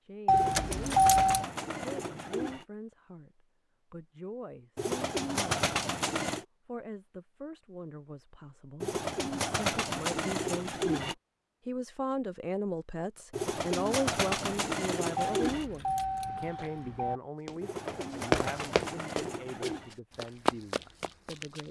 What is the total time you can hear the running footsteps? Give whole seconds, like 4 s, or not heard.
4 s.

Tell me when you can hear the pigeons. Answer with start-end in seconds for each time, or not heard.
0.3-2.6, 4.8-6.5, 8.8-11.2, 13.3-15.7, 17.6-19.9.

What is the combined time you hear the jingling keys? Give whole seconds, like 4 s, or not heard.
3 s.